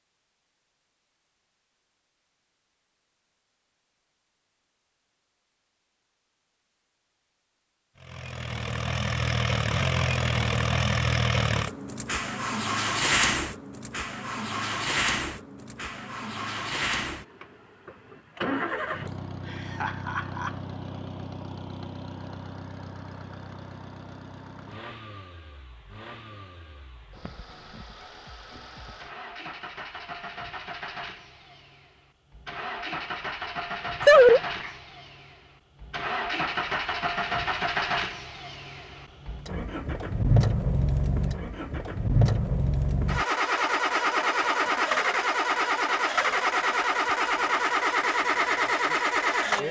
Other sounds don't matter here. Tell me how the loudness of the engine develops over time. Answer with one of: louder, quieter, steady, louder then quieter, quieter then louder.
quieter then louder.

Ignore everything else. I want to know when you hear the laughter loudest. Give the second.
34 s.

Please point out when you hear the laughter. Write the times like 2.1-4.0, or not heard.
19.1-20.6, 34.0-34.7.